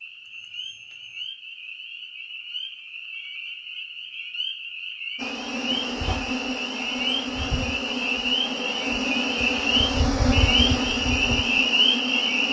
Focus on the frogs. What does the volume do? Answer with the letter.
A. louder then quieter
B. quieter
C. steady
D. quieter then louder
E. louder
E.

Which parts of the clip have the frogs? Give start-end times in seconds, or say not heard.
0.0-12.4.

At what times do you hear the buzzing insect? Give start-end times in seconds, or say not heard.
5.2-12.4.